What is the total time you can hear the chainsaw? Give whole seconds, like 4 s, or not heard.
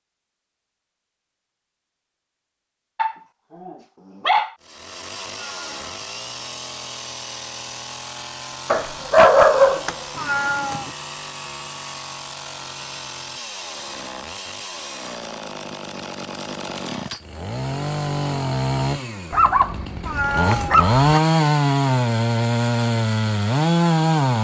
20 s.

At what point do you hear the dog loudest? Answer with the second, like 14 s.
9 s.